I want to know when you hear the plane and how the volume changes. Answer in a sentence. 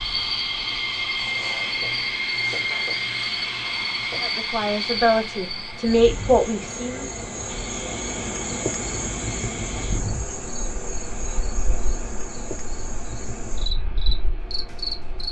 You can hear the plane from 0.0 to 15.2 s, getting quieter.